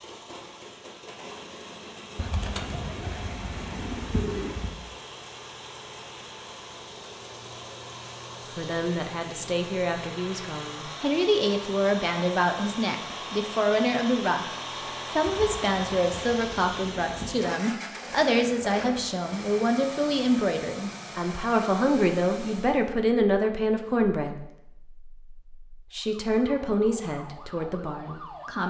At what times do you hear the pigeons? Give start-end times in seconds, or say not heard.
2.1-4.8, 15.2-17.3.